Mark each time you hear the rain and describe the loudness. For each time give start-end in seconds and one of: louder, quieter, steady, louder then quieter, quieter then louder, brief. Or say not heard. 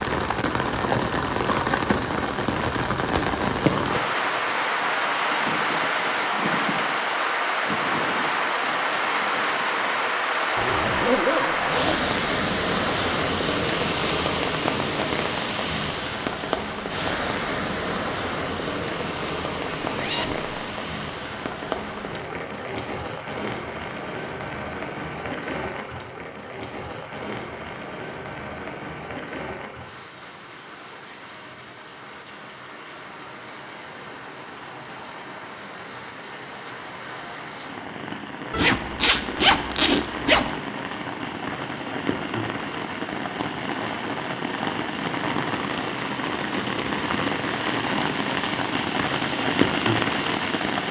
0.0-50.8 quieter then louder.